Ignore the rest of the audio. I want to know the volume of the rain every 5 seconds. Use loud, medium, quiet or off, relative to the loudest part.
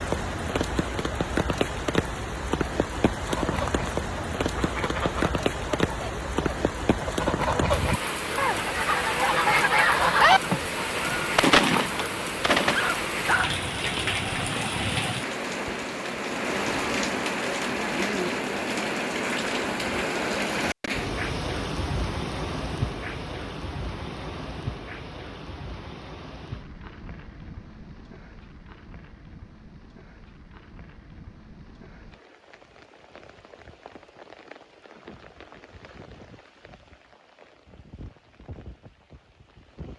loud, loud, loud, loud, loud, quiet, quiet, quiet.